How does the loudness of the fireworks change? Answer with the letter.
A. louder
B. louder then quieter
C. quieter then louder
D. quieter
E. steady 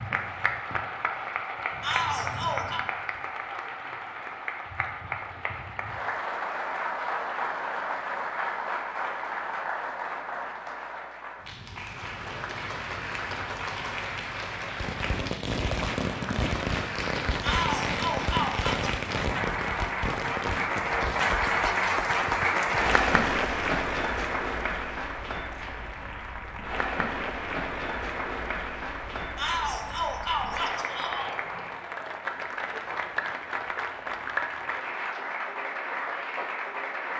D.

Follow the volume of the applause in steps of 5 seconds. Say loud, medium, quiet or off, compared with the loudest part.
medium, medium, medium, medium, loud, medium, medium, medium.